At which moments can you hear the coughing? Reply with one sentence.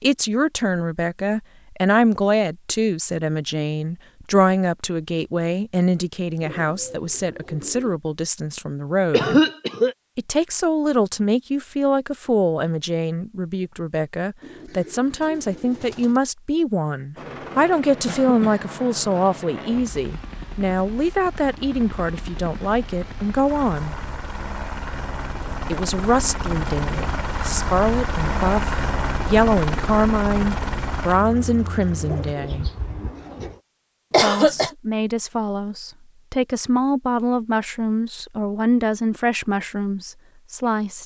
You can hear the coughing from 9.1 to 9.9 s, from 18.1 to 18.6 s and from 34.1 to 34.7 s.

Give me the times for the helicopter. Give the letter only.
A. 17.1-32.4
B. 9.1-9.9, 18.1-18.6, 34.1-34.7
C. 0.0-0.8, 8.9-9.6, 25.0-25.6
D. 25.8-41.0
A.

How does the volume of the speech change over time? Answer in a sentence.
The loudness of the speech stays about the same.